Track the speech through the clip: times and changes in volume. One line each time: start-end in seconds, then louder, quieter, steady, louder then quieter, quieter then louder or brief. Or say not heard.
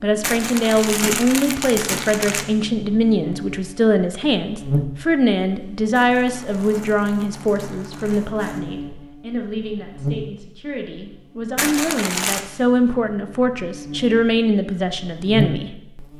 0.0-16.1 quieter then louder.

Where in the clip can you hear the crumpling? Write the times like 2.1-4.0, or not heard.
0.2-2.5, 5.9-8.6, 11.6-12.4.